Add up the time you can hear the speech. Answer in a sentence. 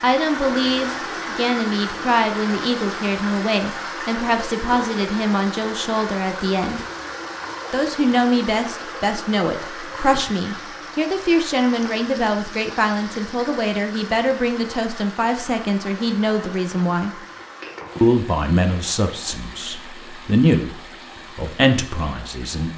You can hear the speech for 21 seconds altogether.